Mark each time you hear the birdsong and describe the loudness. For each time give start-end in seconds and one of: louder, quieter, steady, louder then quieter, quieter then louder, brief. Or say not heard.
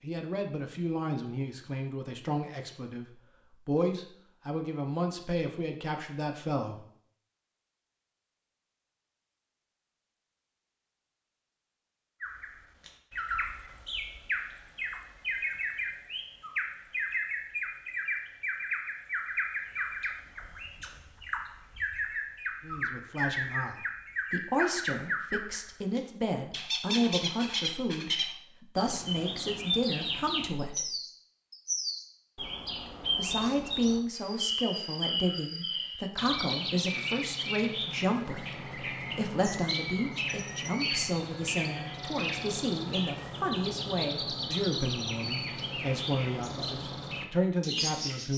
12.2-48.3 steady.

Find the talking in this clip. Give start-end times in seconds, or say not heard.
0.0-3.0, 3.6-6.8, 22.6-30.9, 33.1-48.3.